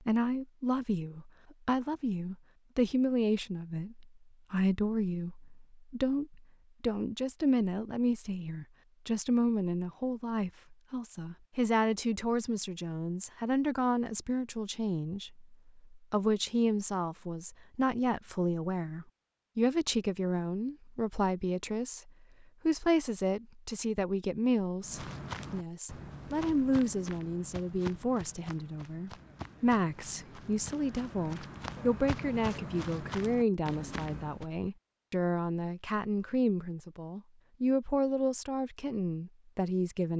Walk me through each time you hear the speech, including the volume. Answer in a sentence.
You can hear the speech from 0.1 to 40.1 s, at a steady volume.